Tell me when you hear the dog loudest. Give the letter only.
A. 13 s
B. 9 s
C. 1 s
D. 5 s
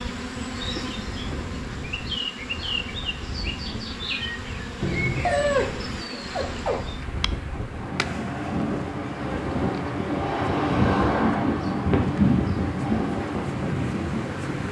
D.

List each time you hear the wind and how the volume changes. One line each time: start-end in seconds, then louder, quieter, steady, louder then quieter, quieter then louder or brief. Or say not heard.
0.0-14.6 louder.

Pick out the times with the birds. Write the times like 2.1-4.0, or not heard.
not heard.